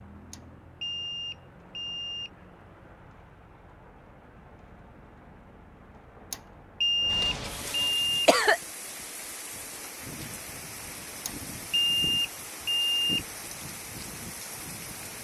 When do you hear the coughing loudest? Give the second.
8 s.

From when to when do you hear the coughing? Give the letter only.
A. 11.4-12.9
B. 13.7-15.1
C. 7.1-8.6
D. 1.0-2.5
C.